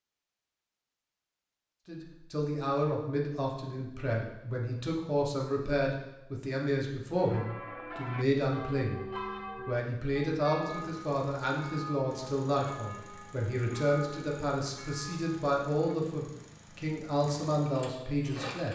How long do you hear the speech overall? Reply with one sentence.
The speech can be heard for 16 seconds in total.